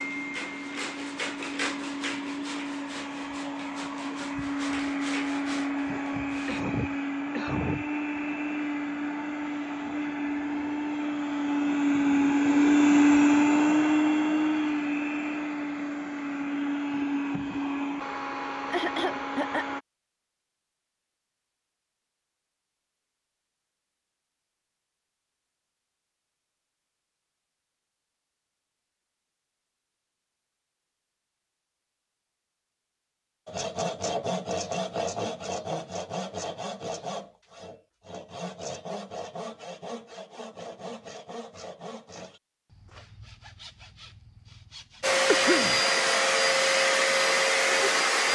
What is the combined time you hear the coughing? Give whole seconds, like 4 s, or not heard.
3 s.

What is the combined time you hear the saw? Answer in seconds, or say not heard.
18 s.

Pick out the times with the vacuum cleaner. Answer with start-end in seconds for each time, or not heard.
0.0-19.8, 45.0-48.2.